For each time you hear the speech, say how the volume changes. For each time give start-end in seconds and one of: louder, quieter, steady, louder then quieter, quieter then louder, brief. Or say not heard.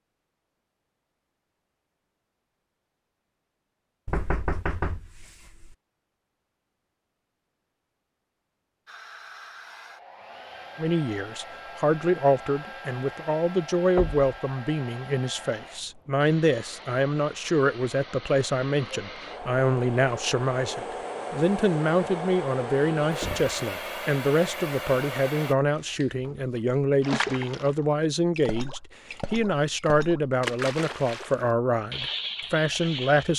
10.8-33.3 steady.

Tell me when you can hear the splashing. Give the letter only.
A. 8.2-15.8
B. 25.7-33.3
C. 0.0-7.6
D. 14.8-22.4
B.